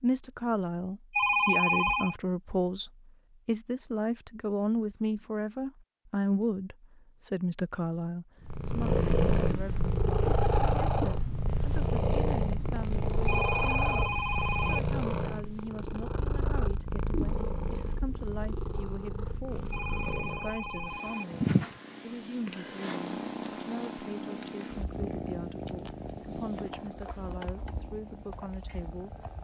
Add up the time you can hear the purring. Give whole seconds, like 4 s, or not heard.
21 s.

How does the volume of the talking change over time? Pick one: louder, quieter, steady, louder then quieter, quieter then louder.
quieter.